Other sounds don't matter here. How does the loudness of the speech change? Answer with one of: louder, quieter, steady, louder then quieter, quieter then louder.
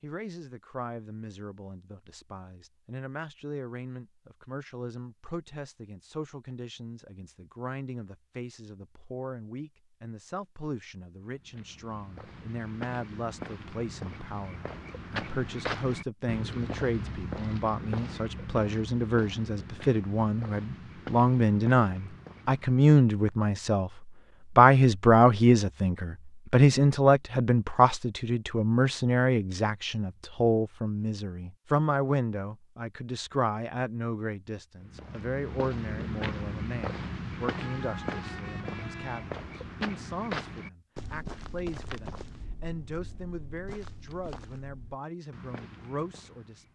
louder then quieter.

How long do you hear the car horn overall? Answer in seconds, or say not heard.
2 s.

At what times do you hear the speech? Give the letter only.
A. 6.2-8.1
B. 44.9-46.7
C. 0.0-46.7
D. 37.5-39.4
C.